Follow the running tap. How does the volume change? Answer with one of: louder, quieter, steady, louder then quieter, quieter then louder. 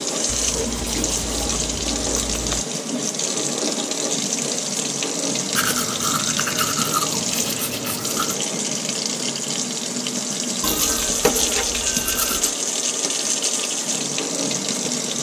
steady.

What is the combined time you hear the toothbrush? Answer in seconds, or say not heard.
7 s.